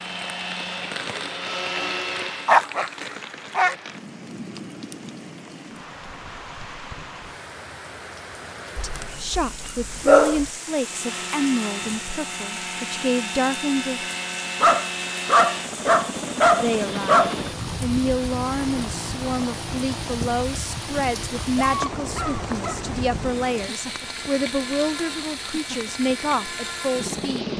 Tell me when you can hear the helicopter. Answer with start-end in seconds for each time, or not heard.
0.0-2.6, 10.7-27.5.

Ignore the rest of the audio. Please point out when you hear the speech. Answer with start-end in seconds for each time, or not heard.
8.8-14.1, 16.6-27.5.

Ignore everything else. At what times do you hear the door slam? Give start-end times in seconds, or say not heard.
not heard.